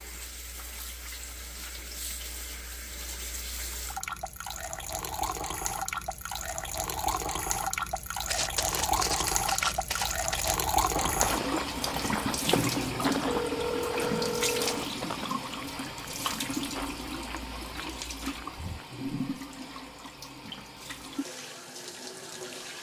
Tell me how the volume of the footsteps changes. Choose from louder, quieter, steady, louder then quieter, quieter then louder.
quieter.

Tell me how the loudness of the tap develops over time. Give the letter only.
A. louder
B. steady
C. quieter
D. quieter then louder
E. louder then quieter
E.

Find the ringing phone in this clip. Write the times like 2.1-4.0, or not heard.
13.2-14.9.